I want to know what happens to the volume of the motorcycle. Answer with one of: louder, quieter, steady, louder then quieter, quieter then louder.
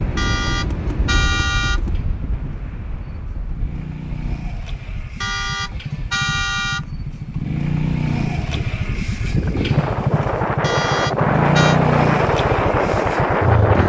louder.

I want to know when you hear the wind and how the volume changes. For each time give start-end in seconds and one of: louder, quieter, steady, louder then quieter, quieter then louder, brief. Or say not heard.
0.0-13.8 quieter then louder.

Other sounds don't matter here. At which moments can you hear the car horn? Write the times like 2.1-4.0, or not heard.
0.1-1.8, 5.2-6.8, 10.6-11.8.